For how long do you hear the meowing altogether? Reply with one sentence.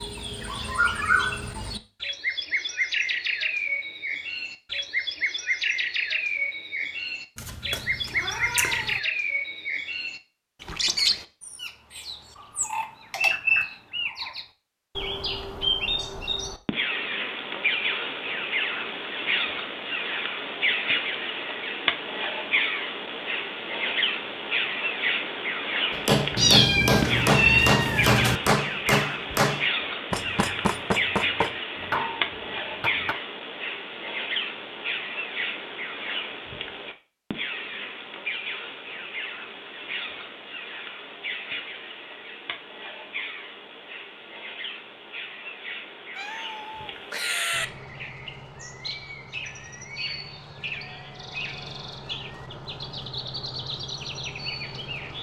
The meowing can be heard for 5 seconds in total.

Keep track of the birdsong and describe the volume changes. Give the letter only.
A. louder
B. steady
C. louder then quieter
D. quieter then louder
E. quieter
E.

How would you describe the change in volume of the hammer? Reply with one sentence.
The volume of the hammer goes down.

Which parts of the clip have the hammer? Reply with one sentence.
The hammer can be heard from 25.9 to 33.1 s.